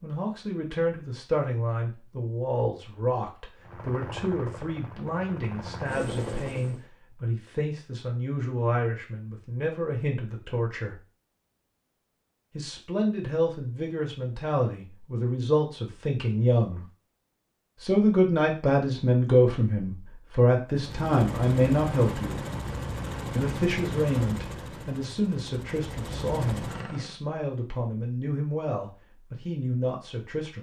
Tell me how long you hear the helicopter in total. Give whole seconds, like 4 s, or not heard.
10 s.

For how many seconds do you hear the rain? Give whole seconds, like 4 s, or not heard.
not heard.